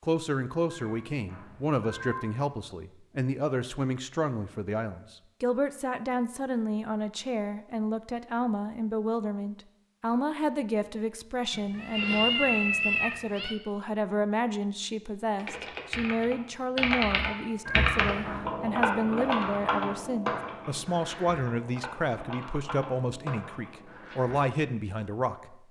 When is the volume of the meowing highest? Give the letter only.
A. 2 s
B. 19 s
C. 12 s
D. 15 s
C.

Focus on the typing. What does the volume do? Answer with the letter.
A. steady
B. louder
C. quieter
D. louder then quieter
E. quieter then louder
C.